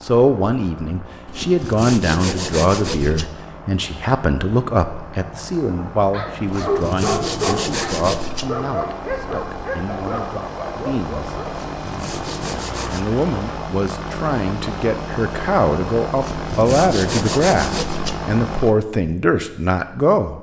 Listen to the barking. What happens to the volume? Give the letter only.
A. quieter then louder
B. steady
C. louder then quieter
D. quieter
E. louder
D.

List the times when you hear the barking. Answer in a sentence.
The barking can be heard from 5.7 to 11.7 s.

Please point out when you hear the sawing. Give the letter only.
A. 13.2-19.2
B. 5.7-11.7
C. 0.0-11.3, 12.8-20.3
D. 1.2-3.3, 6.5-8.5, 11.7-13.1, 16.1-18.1
D.